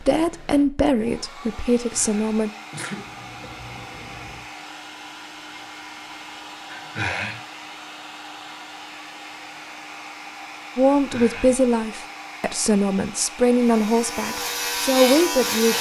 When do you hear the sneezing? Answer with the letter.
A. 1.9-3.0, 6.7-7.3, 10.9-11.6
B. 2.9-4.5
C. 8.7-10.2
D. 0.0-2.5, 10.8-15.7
A.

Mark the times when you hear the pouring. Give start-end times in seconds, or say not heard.
2.9-4.5.